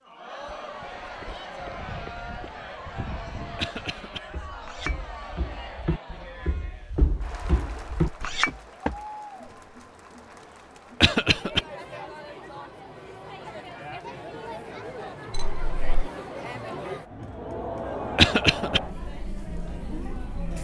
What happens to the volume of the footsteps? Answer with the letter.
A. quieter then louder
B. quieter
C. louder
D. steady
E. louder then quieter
C.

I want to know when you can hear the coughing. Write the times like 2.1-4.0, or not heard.
3.5-4.2, 11.0-11.6, 18.1-18.8.